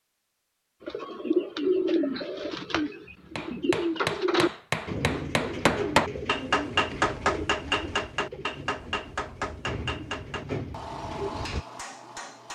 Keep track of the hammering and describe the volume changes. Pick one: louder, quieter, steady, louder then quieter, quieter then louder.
louder then quieter.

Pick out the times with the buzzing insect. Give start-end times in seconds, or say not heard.
not heard.